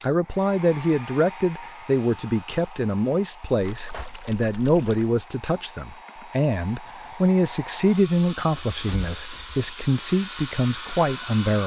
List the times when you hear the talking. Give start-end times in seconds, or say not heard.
0.0-11.6.